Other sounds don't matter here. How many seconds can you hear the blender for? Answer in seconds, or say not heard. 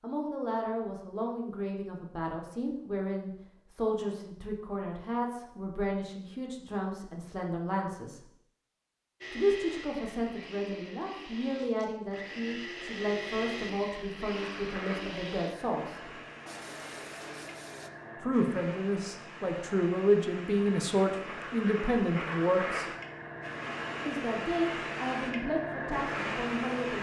9 s.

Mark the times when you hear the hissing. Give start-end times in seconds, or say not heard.
14.2-26.9.